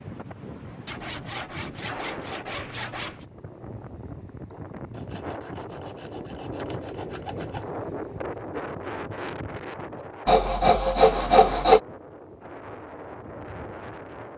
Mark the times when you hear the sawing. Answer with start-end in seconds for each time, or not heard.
0.8-3.2, 4.9-7.7, 10.2-11.8.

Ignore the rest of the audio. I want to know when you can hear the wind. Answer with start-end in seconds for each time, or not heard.
0.0-14.3.